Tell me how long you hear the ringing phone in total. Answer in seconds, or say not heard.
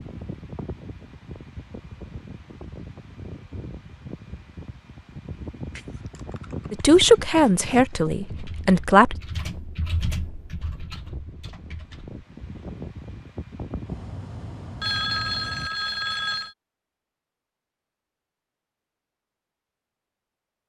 2 s.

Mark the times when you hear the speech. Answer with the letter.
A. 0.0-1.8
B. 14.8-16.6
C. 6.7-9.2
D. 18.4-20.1
C.